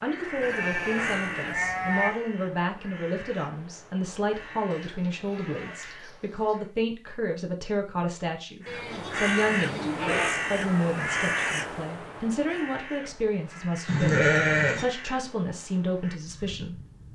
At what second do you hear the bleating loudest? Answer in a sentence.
The loudest moment of the bleating is at 14 seconds.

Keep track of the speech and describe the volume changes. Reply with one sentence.
The loudness of the speech stays about the same.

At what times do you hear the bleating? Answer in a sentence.
You can hear the bleating from 0.4 to 2.1 s, from 4.7 to 6.5 s, from 8.7 to 10.3 s and from 13.8 to 14.8 s.